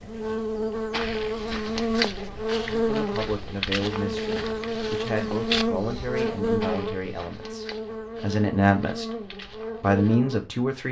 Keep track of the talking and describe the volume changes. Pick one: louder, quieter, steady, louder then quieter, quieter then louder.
louder.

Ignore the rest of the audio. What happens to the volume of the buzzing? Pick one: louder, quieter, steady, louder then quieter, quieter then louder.
quieter.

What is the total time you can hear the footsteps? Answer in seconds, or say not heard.
9 s.